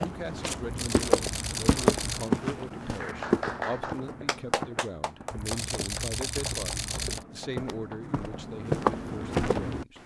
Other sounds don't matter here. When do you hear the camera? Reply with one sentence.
You can hear the camera from 0.6 to 2.3 s and from 5.3 to 7.2 s.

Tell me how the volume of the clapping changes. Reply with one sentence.
The loudness of the clapping goes down.